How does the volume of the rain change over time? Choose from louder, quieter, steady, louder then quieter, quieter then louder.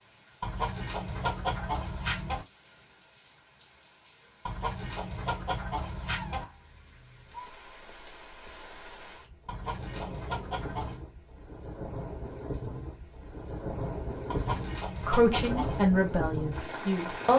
louder.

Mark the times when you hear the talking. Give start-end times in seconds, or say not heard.
15.0-17.3.